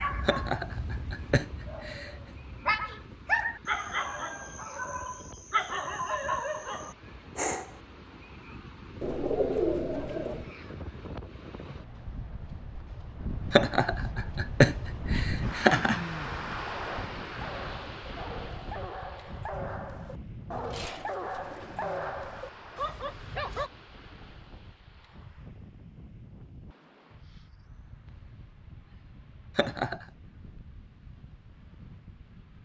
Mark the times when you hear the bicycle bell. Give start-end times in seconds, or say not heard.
not heard.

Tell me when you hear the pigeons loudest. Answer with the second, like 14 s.
10 s.